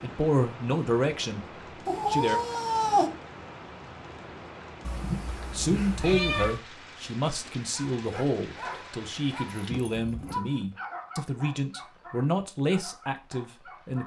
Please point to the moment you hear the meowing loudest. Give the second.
3 s.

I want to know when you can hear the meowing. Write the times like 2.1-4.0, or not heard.
1.9-3.1, 4.8-6.6, 9.6-10.4.